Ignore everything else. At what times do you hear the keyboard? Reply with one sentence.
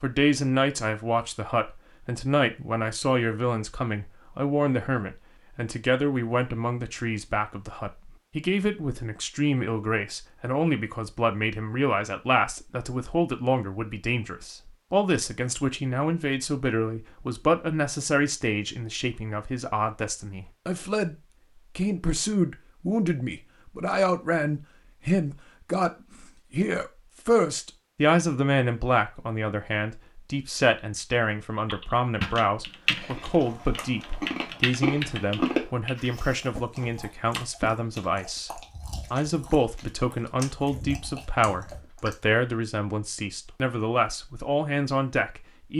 The keyboard can be heard from 31.6 to 36.6 s.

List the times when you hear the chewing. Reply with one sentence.
The chewing can be heard from 32.9 to 42.4 s.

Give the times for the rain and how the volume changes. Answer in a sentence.
The rain can't be heard in this clip.